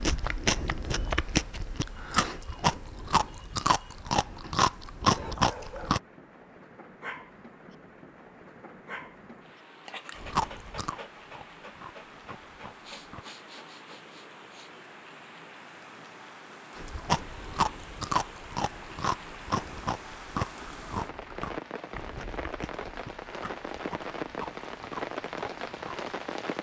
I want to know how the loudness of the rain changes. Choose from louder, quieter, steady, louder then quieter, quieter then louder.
louder.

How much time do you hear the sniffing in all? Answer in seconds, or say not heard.
2 s.